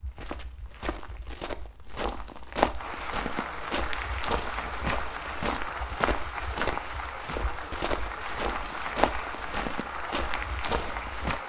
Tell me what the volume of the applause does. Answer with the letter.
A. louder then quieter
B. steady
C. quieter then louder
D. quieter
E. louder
B.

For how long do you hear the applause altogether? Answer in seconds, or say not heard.
9 s.